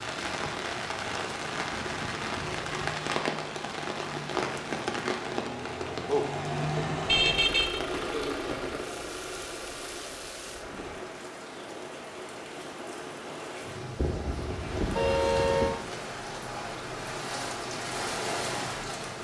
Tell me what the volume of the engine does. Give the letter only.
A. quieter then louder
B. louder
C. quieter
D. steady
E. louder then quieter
E.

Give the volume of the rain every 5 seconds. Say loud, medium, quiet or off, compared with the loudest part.
loud, loud, medium, loud.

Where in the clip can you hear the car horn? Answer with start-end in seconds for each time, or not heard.
7.0-7.8, 13.9-15.8.